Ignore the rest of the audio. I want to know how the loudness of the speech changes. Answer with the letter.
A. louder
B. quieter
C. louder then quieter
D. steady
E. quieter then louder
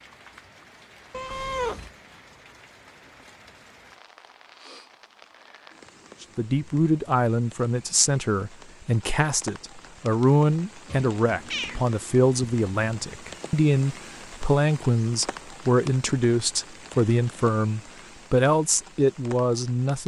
D.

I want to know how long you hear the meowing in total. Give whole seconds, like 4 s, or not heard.
2 s.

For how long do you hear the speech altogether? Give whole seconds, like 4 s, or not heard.
14 s.